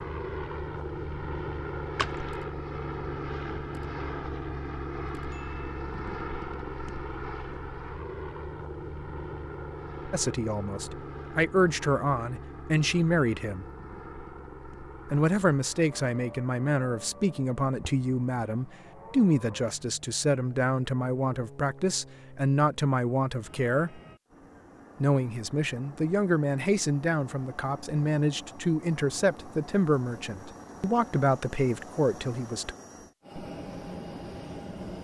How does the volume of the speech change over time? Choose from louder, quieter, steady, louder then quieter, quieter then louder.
steady.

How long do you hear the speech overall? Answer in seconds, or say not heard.
20 s.